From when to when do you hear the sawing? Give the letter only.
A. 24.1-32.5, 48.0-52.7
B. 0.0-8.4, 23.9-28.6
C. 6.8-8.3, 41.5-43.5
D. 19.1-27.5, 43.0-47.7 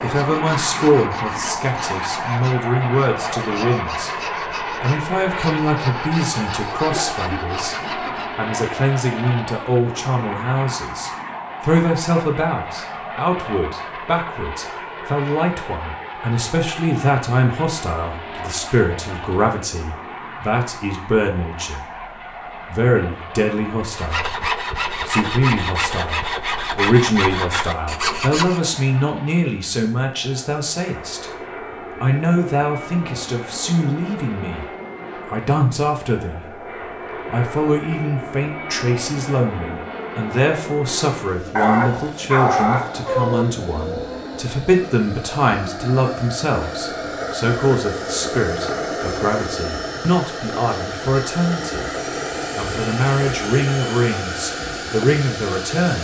B.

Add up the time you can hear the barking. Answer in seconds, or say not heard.
3 s.